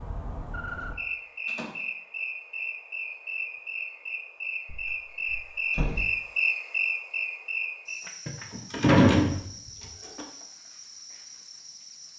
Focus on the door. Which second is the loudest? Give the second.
9 s.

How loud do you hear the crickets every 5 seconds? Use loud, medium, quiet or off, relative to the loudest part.
loud, loud, quiet.